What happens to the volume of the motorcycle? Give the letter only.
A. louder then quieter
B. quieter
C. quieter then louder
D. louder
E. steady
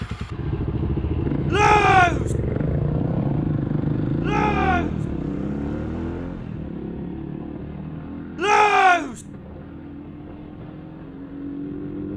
B.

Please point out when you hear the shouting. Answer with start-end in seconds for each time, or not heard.
1.5-2.4, 4.2-5.0, 8.3-9.2.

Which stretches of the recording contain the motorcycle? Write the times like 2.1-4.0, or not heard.
0.0-12.1.